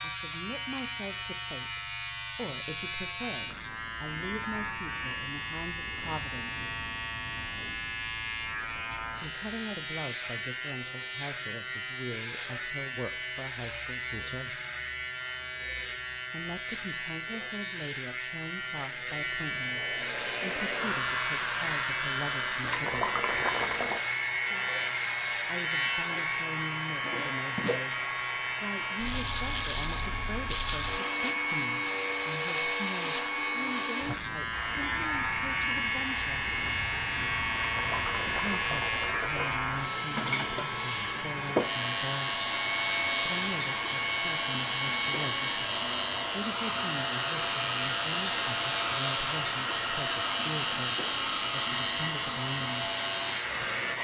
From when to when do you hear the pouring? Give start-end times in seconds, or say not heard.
22.6-24.0, 37.5-39.5.